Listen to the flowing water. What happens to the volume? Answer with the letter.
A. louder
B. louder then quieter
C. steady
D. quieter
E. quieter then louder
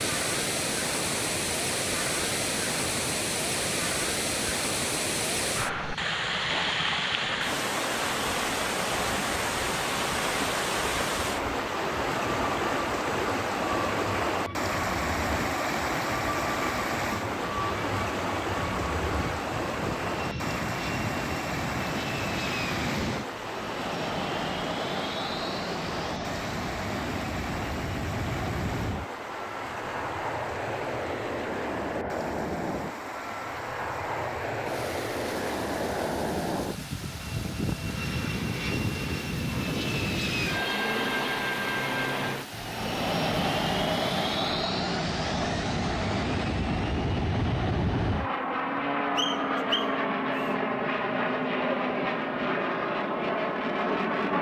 D.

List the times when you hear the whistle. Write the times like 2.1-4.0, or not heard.
49.1-50.5.